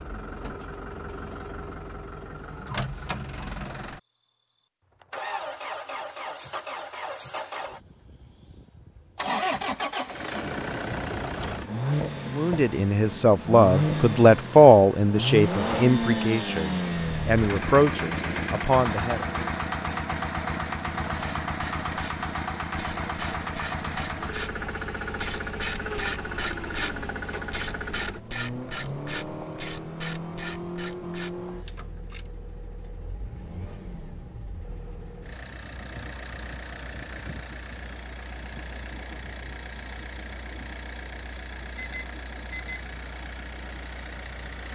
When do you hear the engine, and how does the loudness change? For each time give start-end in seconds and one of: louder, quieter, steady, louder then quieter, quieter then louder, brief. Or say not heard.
0.0-44.7 louder then quieter.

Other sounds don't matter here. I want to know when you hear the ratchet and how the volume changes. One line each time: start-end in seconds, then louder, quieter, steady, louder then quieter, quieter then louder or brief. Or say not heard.
21.1-32.3 louder then quieter.